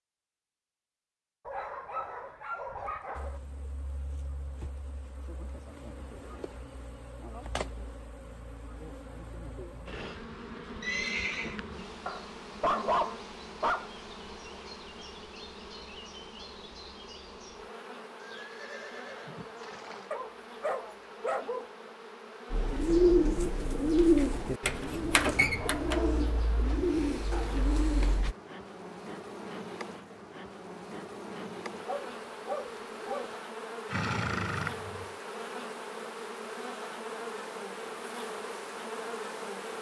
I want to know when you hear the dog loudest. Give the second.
13 s.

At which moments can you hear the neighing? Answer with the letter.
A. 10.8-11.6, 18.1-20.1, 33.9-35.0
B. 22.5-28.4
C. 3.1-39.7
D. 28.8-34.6
A.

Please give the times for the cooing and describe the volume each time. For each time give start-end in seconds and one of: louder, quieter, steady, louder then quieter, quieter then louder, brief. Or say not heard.
22.5-28.4 quieter.